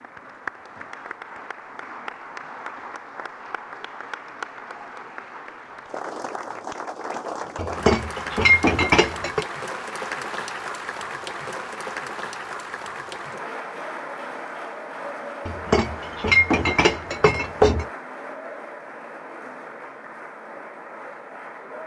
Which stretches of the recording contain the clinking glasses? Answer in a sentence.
You can hear the clinking glasses from 7.5 to 9.4 s and from 15.4 to 17.9 s.